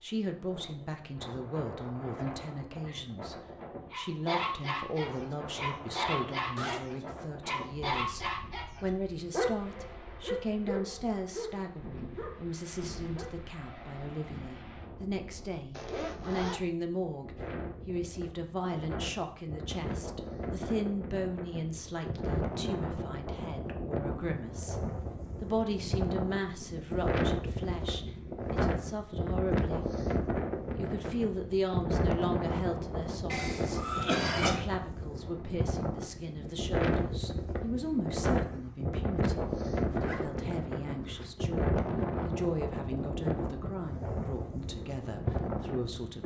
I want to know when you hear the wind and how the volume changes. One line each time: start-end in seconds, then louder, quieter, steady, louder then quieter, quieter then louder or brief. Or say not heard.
0.1-46.2 louder.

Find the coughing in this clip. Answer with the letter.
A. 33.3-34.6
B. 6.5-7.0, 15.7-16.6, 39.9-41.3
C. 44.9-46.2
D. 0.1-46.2
A.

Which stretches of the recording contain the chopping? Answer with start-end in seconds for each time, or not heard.
not heard.